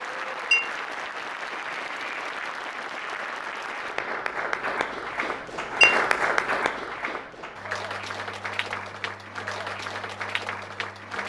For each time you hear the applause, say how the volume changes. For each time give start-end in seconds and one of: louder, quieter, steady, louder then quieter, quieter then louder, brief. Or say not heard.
0.0-11.2 louder then quieter.